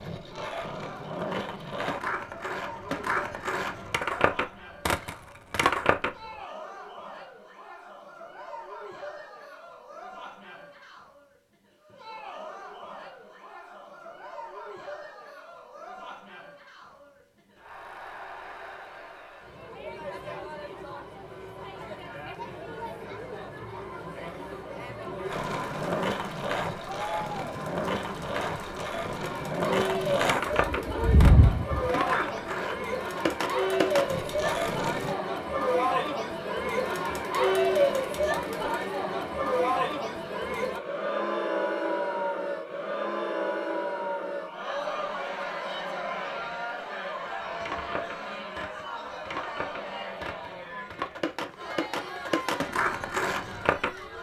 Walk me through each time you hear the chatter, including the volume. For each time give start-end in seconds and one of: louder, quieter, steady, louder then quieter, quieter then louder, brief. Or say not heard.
0.3-54.1 louder then quieter.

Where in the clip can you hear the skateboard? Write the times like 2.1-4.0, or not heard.
0.0-6.2, 25.3-35.1, 47.6-53.9.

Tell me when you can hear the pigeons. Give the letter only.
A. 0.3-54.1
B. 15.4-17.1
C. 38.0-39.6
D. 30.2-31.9
D.